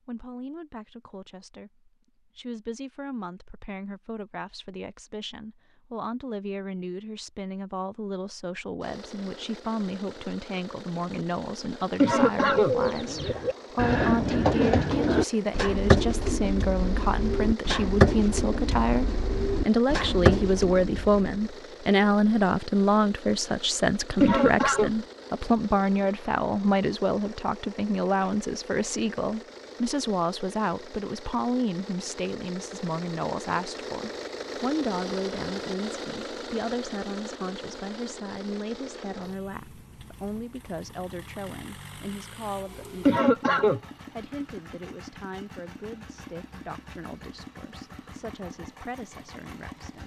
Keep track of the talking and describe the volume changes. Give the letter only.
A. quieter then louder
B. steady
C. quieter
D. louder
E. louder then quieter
E.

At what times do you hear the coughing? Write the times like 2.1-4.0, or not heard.
11.9-12.8, 24.2-24.9, 43.0-43.8.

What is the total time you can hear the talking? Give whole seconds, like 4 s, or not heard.
50 s.